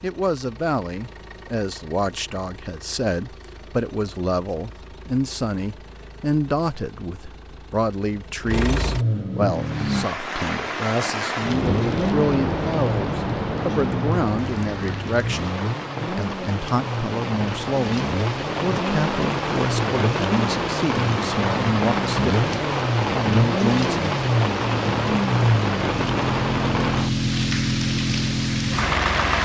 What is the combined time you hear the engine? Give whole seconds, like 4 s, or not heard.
28 s.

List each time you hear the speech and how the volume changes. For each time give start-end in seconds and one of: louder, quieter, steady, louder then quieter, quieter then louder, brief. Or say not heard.
0.0-24.1 steady.